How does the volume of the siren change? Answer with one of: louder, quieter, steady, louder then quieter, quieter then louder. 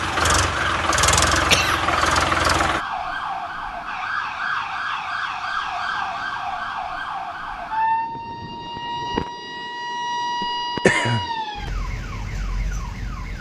steady.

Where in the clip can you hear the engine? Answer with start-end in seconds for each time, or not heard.
0.0-2.9.